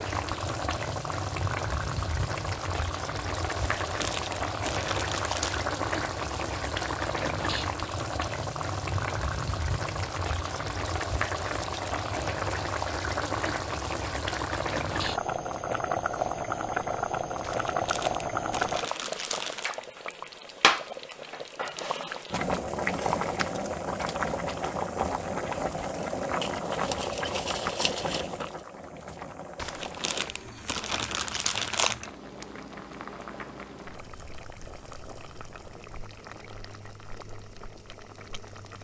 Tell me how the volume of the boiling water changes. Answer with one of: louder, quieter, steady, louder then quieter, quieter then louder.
quieter.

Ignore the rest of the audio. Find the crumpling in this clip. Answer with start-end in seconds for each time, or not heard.
3.5-5.7, 17.4-19.7, 29.6-32.0.